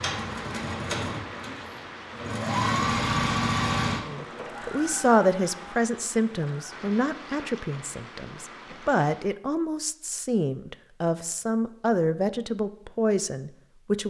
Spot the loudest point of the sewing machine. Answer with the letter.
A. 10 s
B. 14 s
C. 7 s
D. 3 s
D.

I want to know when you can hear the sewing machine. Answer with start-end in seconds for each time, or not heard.
0.0-6.8.